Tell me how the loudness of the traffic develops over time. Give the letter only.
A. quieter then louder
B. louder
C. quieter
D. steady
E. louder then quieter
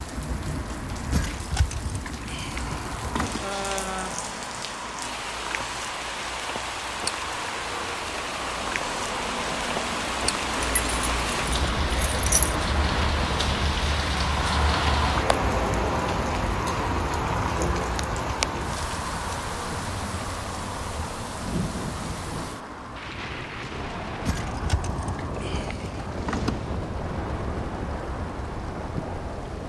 E.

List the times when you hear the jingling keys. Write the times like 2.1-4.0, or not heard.
1.1-3.5, 10.6-12.6, 24.2-26.6.